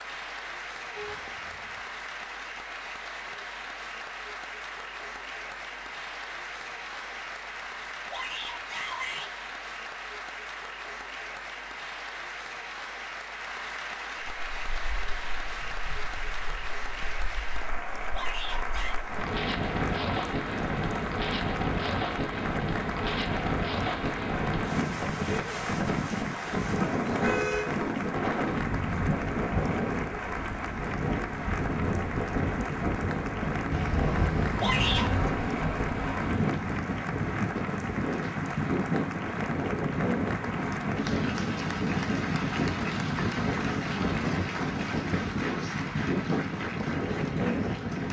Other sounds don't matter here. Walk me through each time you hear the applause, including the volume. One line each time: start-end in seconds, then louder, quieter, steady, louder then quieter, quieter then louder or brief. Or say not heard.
0.0-48.0 steady.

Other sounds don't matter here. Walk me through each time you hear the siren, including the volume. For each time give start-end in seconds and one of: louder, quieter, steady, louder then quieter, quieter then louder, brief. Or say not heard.
not heard.